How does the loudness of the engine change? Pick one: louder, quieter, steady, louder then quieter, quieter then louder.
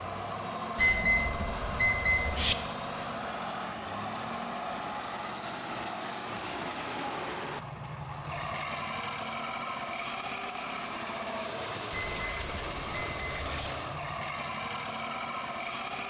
steady.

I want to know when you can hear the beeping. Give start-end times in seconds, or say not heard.
0.8-2.5, 11.9-13.7.